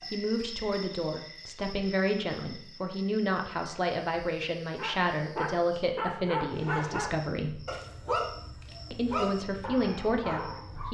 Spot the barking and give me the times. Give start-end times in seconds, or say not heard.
4.8-10.8.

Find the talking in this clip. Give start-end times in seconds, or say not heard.
0.1-7.6, 8.9-10.8.